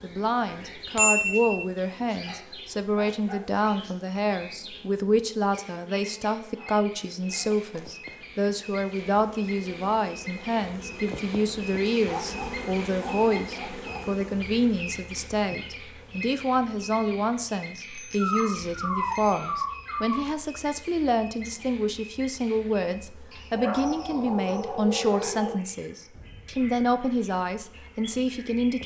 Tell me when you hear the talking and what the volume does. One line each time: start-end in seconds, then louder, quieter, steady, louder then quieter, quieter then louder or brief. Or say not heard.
0.0-28.8 steady.